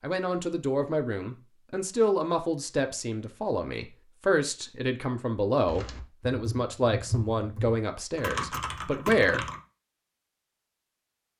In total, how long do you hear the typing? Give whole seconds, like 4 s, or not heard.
4 s.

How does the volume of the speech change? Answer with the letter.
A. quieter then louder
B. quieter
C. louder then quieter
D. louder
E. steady
E.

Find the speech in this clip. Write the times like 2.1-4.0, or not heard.
0.0-9.4.